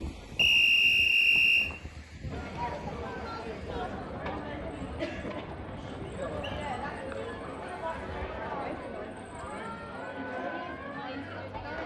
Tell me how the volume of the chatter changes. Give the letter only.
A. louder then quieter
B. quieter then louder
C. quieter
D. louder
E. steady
E.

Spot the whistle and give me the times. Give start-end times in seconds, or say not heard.
0.3-1.7, 6.0-6.7.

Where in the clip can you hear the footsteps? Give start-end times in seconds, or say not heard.
not heard.